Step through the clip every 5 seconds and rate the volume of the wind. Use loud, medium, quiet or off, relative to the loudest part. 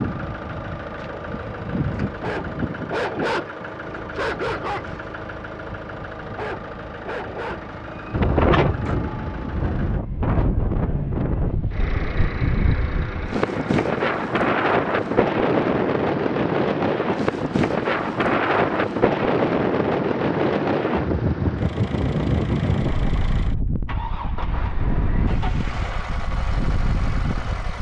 off, loud, loud, loud, loud, medium.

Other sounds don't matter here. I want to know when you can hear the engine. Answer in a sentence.
You can hear the engine from 0.0 to 27.7 s.